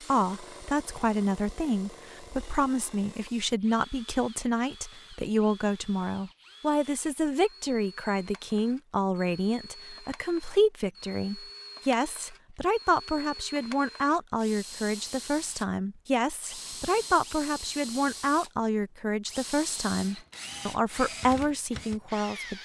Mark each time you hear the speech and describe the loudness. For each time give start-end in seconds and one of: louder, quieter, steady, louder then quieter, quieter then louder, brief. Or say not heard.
0.1-22.5 steady.